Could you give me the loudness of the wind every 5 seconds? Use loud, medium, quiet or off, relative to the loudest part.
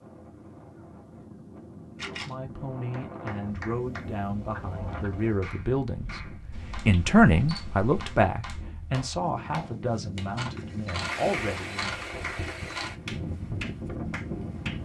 medium, medium, loud.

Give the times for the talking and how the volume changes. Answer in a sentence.
You can hear the talking from 1.9 to 11.9 s, getting louder then quieter.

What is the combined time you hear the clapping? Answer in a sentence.
You can hear the clapping for 11 seconds altogether.